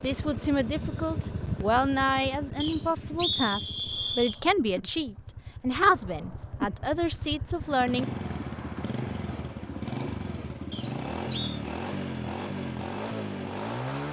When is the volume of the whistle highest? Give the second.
3 s.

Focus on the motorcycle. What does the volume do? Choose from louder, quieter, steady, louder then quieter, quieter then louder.
quieter then louder.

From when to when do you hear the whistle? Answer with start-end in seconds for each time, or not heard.
2.6-4.4, 10.7-11.6.